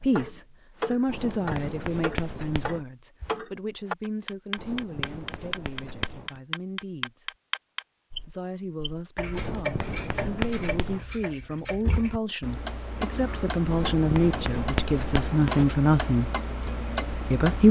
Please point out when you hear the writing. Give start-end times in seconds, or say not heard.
1.1-2.9, 4.5-6.4, 9.3-11.1, 13.7-15.7.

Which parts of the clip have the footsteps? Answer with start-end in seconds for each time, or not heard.
not heard.